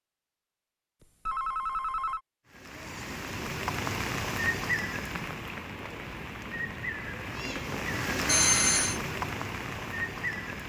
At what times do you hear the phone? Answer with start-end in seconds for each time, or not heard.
1.0-2.2, 8.2-9.0.